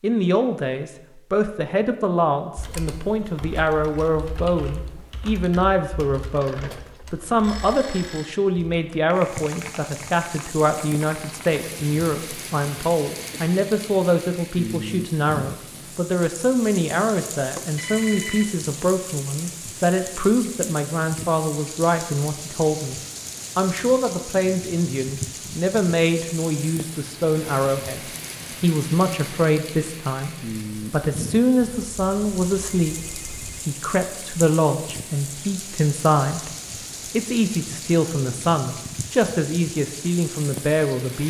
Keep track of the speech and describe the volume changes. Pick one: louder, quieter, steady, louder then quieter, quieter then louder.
steady.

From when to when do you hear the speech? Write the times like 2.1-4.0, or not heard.
0.0-36.5, 37.1-41.2.